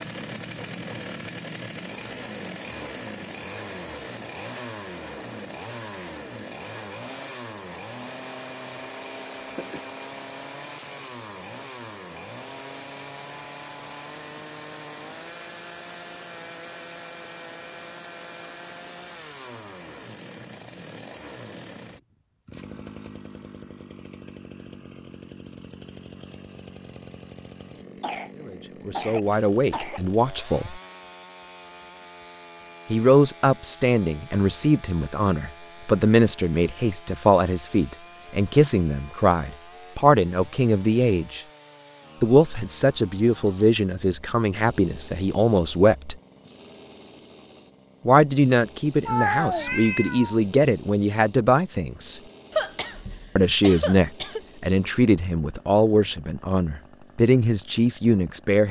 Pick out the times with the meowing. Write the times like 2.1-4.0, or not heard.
49.0-50.4.